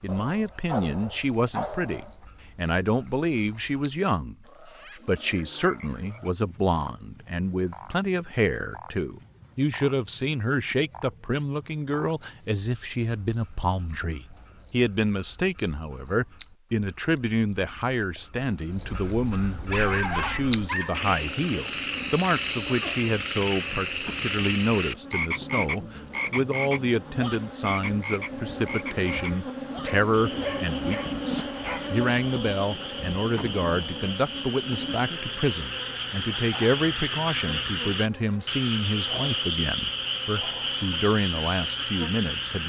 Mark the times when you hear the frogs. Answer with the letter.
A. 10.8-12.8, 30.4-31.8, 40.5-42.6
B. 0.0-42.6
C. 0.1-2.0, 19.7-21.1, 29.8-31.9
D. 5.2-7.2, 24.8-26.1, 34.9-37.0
B.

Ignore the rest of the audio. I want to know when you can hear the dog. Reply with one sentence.
You can hear the dog from 0.1 to 2.0 s, from 19.7 to 21.1 s and from 29.8 to 31.9 s.